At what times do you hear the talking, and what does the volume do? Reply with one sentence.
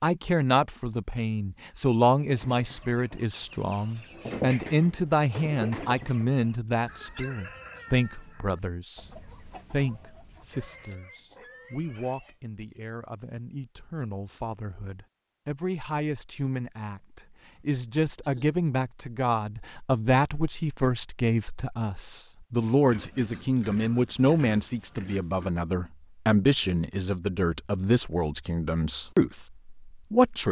The talking can be heard from 0.0 to 30.4 s, getting quieter then louder.